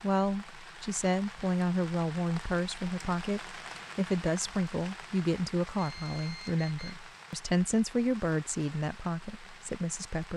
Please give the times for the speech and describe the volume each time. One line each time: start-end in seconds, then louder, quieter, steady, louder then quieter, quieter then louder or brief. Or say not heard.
0.0-10.3 steady.